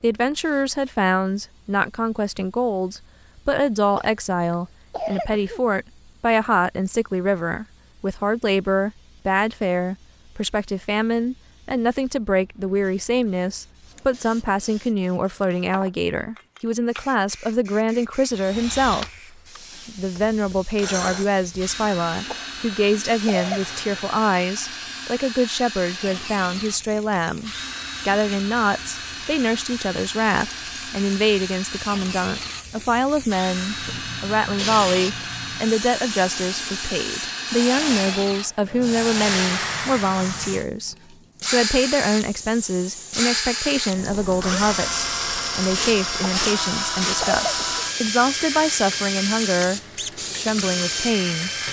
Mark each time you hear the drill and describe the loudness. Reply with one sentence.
The drill can be heard from 18.2 to 51.6 s, getting louder.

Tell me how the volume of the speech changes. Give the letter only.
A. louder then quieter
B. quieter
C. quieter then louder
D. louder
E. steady
E.